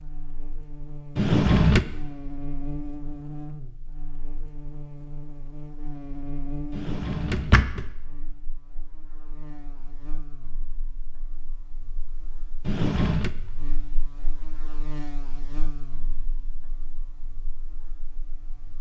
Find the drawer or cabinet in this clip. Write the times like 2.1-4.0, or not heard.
1.1-1.9, 6.7-7.8, 12.6-13.3.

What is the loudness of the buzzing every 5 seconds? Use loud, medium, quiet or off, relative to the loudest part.
loud, loud, medium, medium.